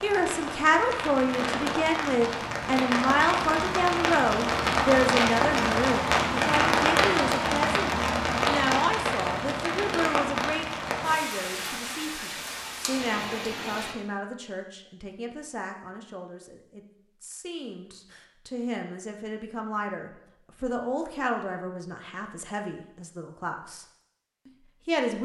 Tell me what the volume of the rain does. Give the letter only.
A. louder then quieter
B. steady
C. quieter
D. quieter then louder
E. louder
A.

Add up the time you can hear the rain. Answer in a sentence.
The rain can be heard for 14 seconds in total.